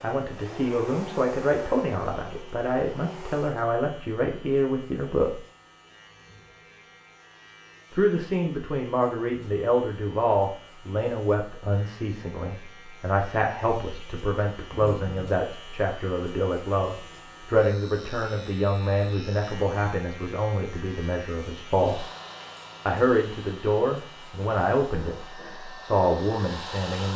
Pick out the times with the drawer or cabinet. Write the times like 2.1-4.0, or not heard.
not heard.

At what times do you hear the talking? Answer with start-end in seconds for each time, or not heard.
0.0-5.4, 7.9-22.1, 22.9-27.1.